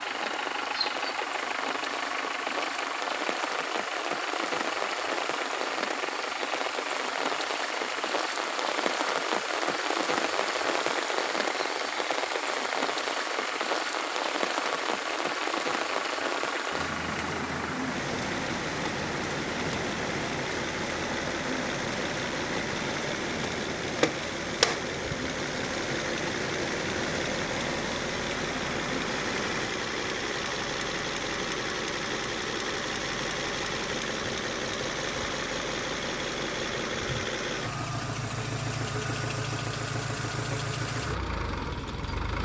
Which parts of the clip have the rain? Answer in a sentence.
The rain can be heard from 0.0 to 29.7 s.